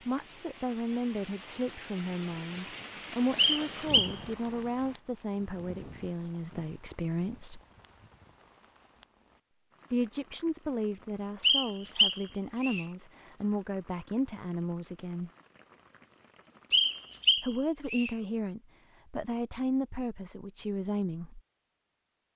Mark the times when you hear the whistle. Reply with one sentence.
You can hear the whistle from 3.4 to 4.2 s, from 11.4 to 12.8 s and from 16.7 to 18.1 s.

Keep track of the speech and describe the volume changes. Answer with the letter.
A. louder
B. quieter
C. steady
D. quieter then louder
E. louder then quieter
C.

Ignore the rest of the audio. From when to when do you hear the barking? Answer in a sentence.
The barking can't be heard in this clip.